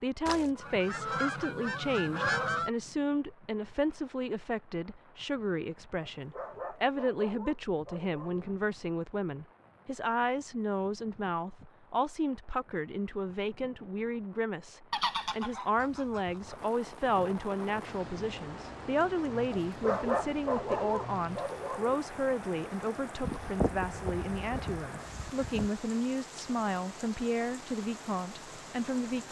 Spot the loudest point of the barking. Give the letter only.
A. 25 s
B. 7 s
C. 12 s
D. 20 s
D.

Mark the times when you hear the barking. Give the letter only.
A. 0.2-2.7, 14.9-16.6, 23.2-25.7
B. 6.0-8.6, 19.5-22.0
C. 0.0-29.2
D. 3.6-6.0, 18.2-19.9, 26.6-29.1
B.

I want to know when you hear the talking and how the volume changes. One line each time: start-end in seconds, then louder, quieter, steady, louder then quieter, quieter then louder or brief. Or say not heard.
0.0-29.2 steady.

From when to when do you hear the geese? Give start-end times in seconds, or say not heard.
0.2-2.7, 14.9-16.6, 23.2-25.7.